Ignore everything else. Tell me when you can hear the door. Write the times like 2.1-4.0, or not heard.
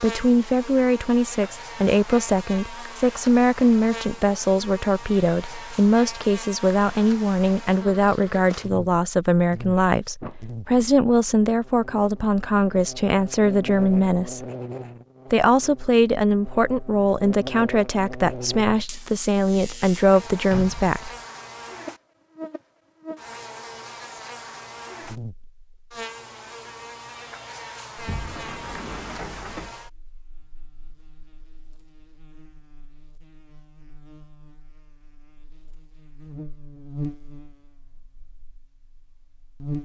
10.2-10.9, 20.5-20.9, 27.9-29.8.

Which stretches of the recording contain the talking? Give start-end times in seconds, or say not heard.
0.0-14.4, 15.3-21.1.